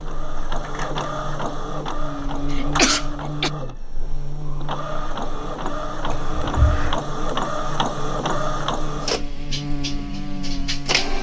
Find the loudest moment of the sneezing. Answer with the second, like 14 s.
3 s.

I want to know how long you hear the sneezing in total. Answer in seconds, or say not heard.
2 s.